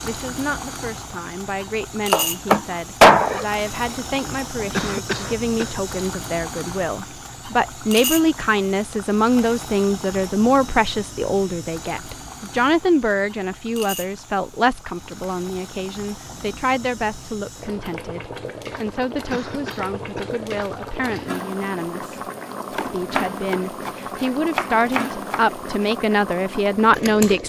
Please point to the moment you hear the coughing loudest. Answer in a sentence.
The volume of the coughing peaks at 5 seconds.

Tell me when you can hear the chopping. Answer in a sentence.
The chopping can be heard from 2.1 to 3.5 s and from 22.8 to 25.4 s.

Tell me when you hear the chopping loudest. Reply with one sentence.
The volume of the chopping peaks at 3 seconds.